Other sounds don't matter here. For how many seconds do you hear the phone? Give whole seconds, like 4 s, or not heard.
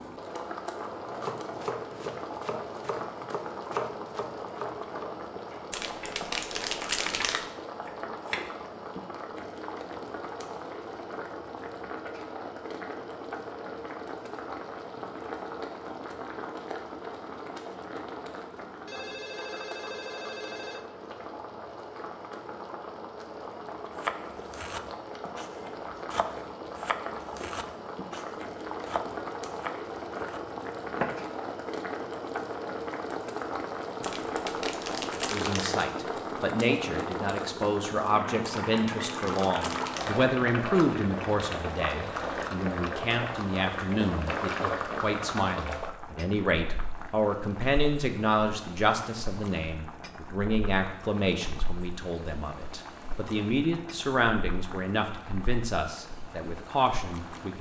2 s.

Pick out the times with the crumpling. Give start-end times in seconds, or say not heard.
5.7-7.5, 34.0-35.9, 38.6-40.2.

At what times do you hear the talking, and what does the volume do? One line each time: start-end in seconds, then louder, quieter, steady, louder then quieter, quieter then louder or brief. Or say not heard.
35.3-57.5 steady.